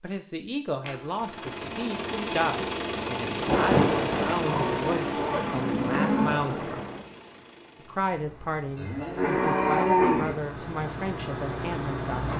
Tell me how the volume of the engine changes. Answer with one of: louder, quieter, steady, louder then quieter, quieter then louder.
quieter then louder.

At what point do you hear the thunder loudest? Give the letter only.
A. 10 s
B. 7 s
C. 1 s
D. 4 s
D.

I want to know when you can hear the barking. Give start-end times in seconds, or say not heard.
not heard.